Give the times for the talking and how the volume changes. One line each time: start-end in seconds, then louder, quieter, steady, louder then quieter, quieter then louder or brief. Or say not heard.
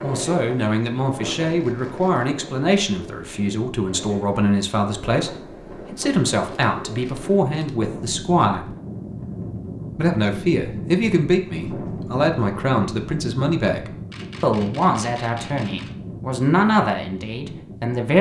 0.0-8.7 steady
9.9-18.1 steady.